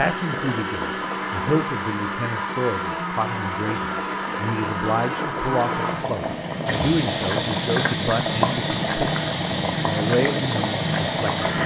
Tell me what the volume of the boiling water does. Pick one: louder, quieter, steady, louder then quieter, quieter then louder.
louder.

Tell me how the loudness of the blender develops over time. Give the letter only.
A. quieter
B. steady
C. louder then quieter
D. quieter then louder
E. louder
B.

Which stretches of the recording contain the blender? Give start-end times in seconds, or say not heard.
0.0-11.6.